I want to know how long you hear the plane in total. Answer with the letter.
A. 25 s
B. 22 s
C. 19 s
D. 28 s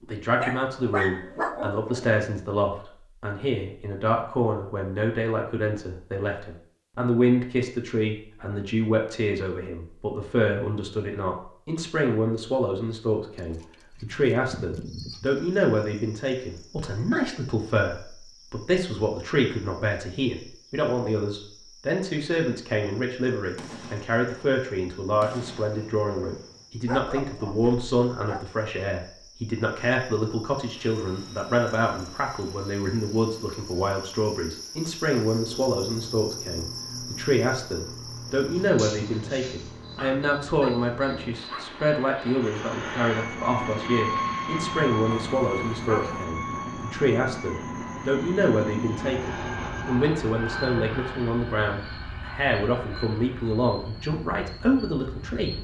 A.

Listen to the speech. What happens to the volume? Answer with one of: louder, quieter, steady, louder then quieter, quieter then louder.
steady.